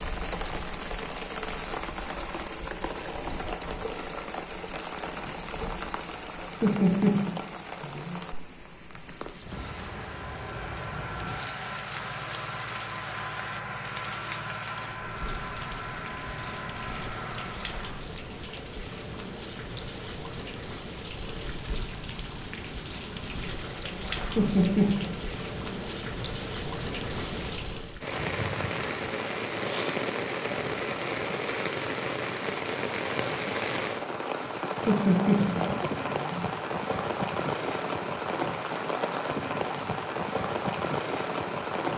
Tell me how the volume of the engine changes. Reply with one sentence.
The volume of the engine stays about the same.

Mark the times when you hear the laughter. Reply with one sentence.
The laughter can be heard from 6.6 to 8.2 s, from 24.4 to 25.2 s and from 34.9 to 36.5 s.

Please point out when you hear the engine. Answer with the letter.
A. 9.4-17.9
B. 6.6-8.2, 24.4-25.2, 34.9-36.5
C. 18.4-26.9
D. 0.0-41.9
A.